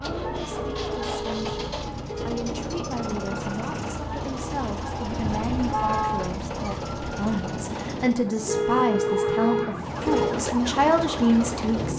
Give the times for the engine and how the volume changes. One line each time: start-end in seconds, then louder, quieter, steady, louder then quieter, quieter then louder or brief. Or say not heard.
0.0-8.2 steady
9.8-11.9 brief.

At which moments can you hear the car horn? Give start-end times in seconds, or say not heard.
0.5-2.4, 5.0-6.3, 8.4-10.3.